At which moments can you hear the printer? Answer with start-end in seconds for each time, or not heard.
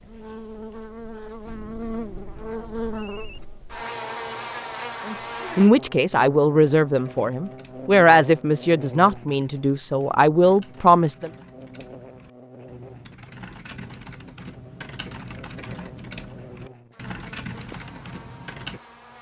not heard.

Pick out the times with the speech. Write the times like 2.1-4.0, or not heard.
5.0-11.3.